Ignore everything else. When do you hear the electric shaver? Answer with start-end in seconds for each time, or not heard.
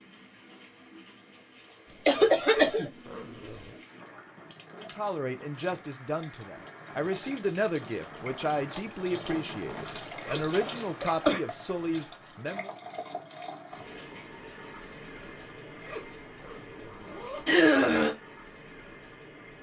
not heard.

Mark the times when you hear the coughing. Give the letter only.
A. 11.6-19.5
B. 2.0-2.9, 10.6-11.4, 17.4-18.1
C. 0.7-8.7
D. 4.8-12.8
B.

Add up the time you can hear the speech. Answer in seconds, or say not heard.
8 s.